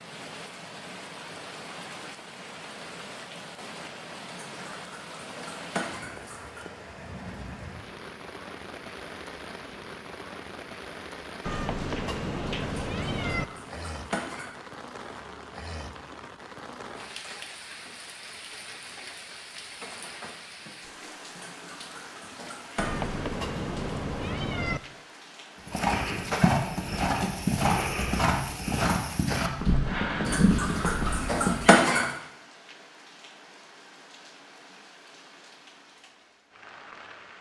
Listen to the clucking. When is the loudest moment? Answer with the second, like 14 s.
32 s.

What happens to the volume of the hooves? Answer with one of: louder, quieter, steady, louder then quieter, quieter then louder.
steady.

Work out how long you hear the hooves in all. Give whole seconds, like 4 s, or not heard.
6 s.